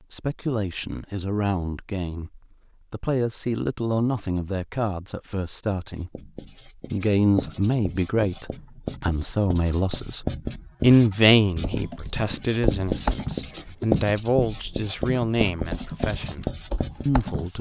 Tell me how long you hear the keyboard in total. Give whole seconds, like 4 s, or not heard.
6 s.